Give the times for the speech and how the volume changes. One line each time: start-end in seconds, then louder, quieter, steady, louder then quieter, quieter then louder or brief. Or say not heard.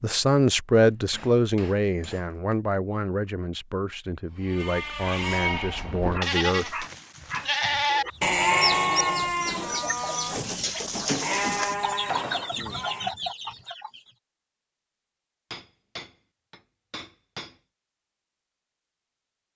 0.0-6.8 quieter.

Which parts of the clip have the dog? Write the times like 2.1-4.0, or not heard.
6.1-8.2.